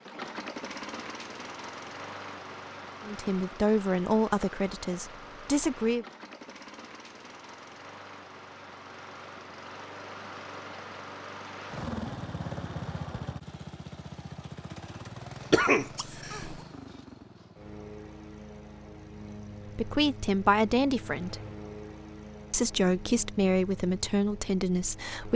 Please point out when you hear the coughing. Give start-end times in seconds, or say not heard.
15.5-16.6.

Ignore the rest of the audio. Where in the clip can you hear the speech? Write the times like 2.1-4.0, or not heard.
3.0-6.0, 19.6-21.4, 22.5-25.3.